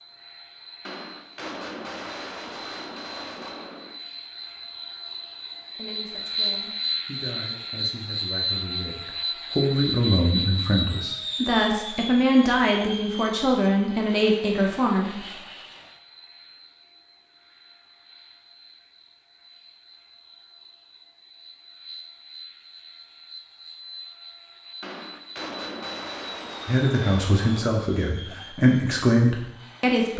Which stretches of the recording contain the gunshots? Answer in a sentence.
The gunshots can be heard from 0.8 to 4.0 s and from 24.8 to 27.8 s.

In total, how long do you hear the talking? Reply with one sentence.
The talking can be heard for 13 seconds in total.